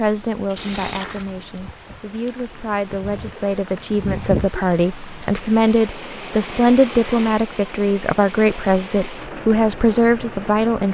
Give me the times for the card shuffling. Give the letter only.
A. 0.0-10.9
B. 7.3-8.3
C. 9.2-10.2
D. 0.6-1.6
D.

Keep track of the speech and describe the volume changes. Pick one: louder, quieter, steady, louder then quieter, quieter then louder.
louder.